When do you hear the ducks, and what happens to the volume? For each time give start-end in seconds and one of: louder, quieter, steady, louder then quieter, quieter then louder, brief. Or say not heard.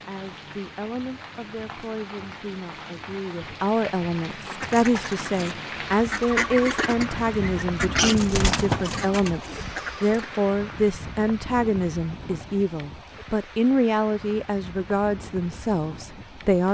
4.2-10.3 louder then quieter.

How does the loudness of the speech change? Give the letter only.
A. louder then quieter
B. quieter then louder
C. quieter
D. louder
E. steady
D.